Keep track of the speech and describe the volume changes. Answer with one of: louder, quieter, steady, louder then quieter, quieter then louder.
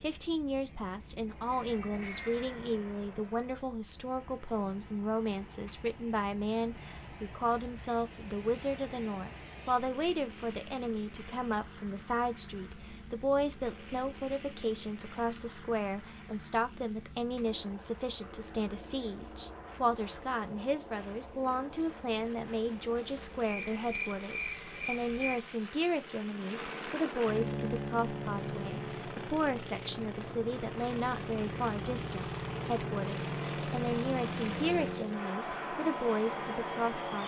steady.